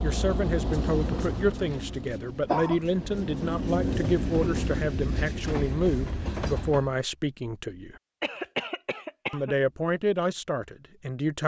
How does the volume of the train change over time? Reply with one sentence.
The loudness of the train goes down, then up.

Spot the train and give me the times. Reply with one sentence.
You can hear the train from 0.0 to 7.0 s.